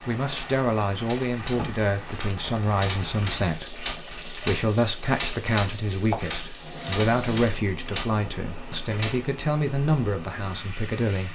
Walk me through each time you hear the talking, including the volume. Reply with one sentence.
The talking can be heard from 0.0 to 11.3 s, at a steady volume.